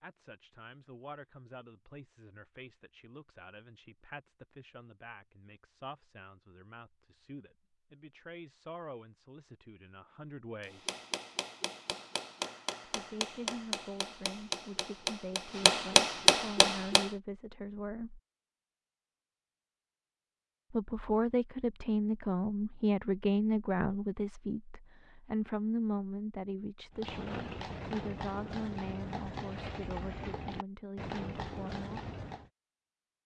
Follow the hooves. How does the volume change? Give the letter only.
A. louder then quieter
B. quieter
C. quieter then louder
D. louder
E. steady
E.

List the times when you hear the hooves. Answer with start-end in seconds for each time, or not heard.
26.9-32.5.